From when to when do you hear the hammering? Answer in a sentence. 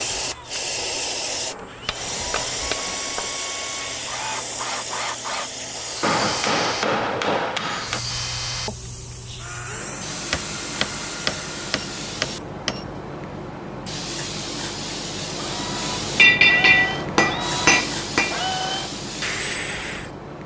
You can hear the hammering from 1.5 to 3.4 s, from 6.0 to 8.0 s, from 10.3 to 12.8 s and from 16.1 to 18.4 s.